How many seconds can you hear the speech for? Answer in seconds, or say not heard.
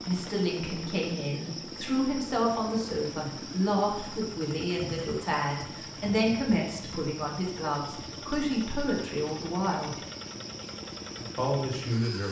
11 s.